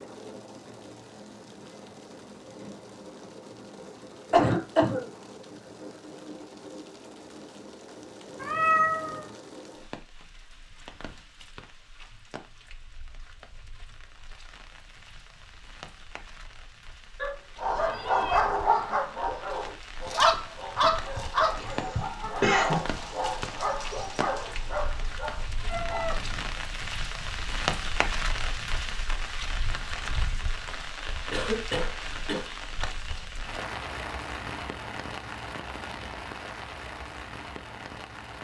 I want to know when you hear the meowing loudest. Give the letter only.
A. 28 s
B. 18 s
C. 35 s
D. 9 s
D.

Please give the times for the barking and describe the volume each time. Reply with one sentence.
You can hear the barking from 17.6 to 26.1 s, getting quieter.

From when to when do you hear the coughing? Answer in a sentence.
The coughing can be heard from 4.3 to 5.0 s, from 21.6 to 22.9 s and from 31.3 to 32.5 s.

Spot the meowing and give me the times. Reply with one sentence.
The meowing can be heard from 8.4 to 9.2 s, from 17.1 to 18.4 s and from 25.6 to 26.5 s.